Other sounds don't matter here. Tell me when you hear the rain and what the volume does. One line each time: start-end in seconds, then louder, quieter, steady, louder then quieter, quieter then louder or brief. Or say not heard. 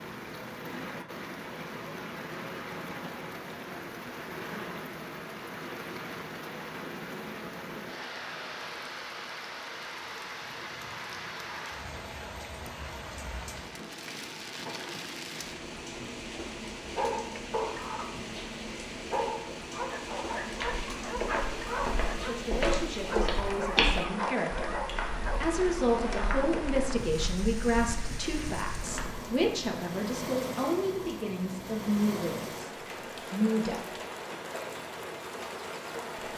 0.0-36.3 steady.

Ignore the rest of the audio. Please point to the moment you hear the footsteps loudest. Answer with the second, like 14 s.
24 s.